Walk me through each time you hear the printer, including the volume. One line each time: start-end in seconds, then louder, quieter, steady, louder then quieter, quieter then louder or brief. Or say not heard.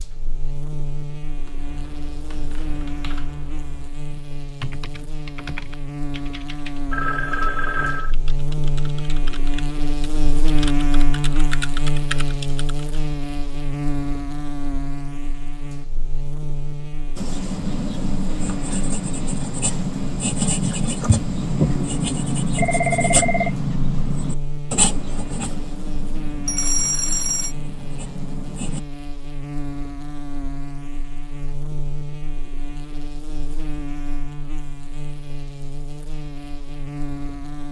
not heard.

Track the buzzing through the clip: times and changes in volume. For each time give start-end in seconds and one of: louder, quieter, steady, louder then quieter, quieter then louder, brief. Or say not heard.
0.0-37.6 louder then quieter.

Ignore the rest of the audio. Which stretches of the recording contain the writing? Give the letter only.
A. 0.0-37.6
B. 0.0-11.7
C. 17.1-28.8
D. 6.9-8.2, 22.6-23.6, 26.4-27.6
C.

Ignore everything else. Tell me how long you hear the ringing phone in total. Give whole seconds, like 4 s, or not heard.
3 s.